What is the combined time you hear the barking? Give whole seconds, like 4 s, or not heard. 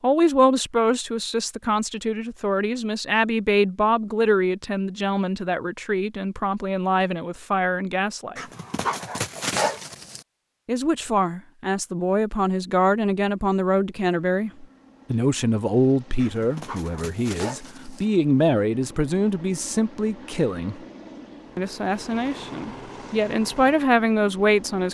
4 s.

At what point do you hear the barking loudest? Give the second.
10 s.